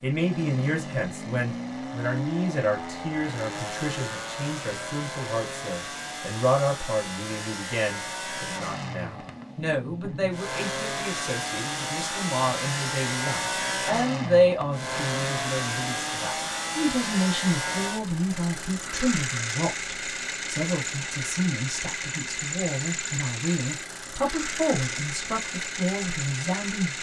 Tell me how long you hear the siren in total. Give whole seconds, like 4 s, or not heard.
not heard.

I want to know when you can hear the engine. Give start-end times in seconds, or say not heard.
0.0-26.9.